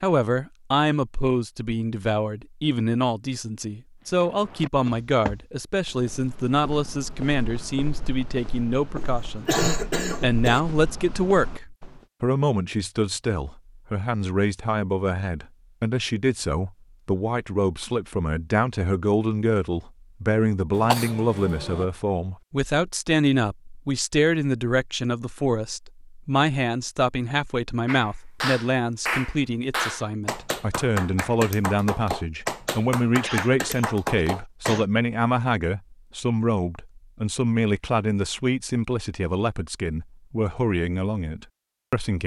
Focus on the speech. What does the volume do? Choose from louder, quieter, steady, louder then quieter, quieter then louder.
steady.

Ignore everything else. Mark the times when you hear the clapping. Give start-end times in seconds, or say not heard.
27.9-34.8.